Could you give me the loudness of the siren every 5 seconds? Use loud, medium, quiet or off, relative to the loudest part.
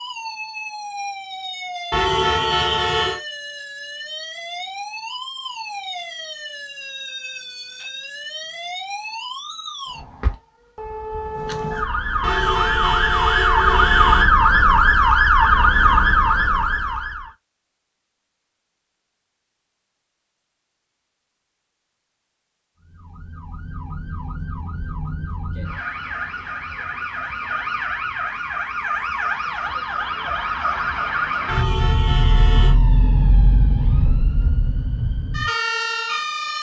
quiet, quiet, loud, loud, quiet, medium, medium, medium.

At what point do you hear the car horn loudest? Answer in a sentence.
The loudest moment of the car horn is at 2 seconds.